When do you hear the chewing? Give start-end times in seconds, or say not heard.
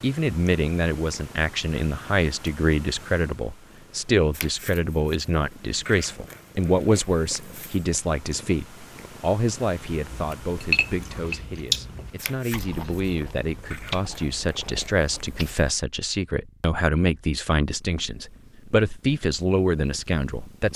9.9-15.6.